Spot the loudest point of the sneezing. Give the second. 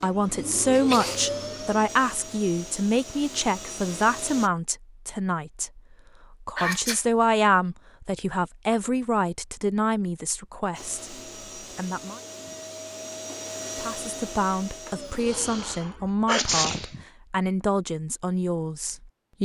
16 s.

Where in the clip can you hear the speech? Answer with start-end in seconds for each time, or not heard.
0.0-11.2, 11.8-12.2, 13.8-19.4.